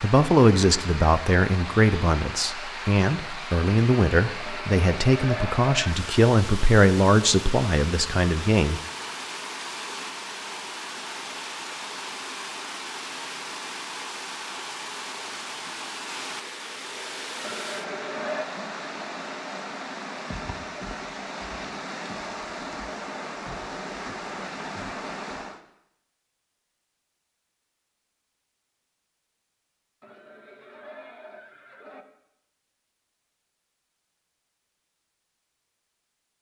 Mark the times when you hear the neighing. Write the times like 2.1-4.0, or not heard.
4.4-6.0, 17.4-18.4, 30.0-32.0.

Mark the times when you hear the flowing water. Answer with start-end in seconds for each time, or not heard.
0.0-25.6.